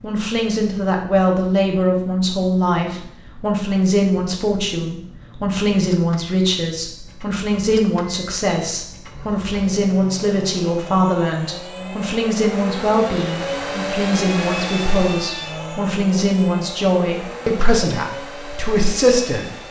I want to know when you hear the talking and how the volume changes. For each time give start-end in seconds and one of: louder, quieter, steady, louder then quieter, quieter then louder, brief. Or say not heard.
0.0-19.5 steady.